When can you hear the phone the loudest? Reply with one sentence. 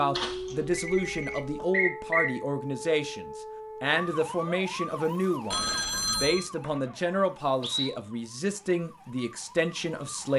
The loudest moment of the phone is at 6 seconds.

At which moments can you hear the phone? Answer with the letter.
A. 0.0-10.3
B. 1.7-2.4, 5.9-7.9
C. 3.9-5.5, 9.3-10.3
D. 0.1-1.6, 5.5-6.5
D.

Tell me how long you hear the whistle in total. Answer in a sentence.
The whistle can be heard for 3 seconds in total.